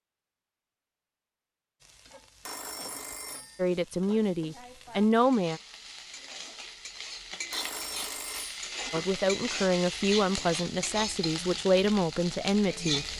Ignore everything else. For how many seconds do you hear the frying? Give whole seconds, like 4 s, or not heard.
11 s.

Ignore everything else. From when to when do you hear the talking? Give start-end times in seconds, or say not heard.
3.5-5.6, 8.9-13.1.